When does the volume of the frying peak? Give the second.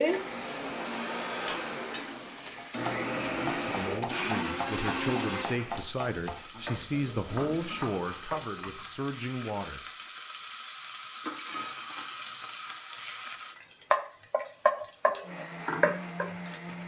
14 s.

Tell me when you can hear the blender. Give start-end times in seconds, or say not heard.
0.0-5.5, 15.2-16.8.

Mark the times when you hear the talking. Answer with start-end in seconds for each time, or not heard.
3.4-9.8.